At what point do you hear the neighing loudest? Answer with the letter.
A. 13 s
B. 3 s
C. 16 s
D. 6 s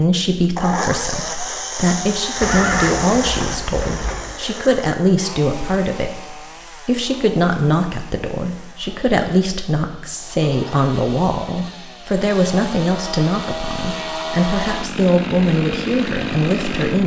B.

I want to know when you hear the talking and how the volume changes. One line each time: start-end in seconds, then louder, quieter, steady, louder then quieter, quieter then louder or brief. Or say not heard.
0.0-17.0 steady.